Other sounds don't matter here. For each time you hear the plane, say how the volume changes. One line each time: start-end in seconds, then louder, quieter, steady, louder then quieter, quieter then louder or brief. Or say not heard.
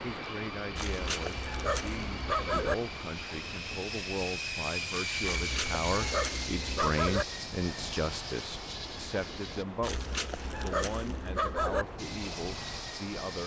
0.0-9.7 louder then quieter
11.9-13.4 brief.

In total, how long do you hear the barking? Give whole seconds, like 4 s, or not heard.
6 s.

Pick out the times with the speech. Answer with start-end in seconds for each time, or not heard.
0.0-13.4.